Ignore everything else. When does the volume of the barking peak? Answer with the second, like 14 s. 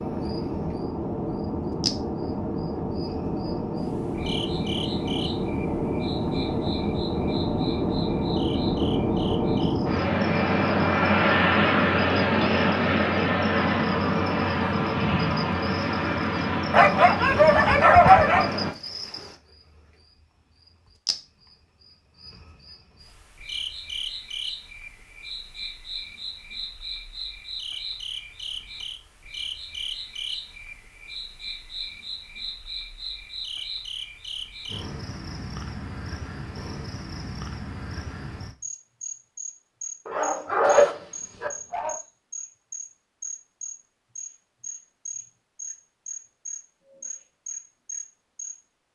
18 s.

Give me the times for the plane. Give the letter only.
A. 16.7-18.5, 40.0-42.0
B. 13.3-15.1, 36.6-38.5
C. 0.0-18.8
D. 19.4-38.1
C.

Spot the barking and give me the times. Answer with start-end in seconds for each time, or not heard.
16.7-18.5, 40.0-42.0.